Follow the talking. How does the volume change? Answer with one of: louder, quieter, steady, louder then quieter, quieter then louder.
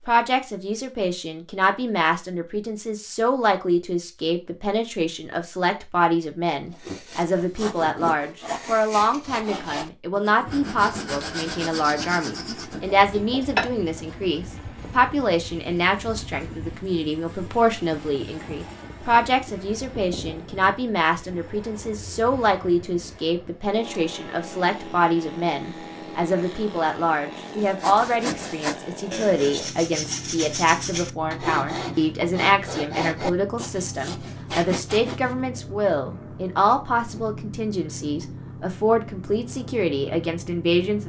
steady.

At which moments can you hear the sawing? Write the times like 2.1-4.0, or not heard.
6.7-14.4, 27.4-35.4.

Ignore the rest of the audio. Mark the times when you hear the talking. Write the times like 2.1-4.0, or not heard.
0.1-41.0.